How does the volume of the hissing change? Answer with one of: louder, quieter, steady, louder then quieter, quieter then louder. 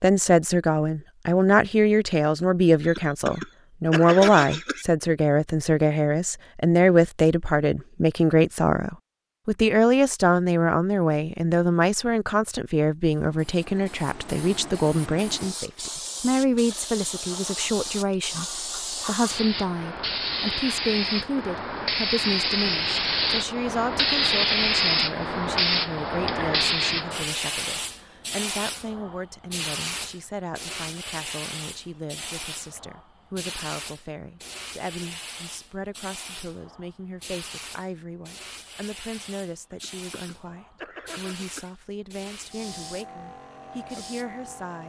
louder then quieter.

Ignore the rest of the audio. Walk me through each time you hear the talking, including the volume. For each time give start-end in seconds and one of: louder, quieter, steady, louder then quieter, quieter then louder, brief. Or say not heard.
0.0-44.8 quieter.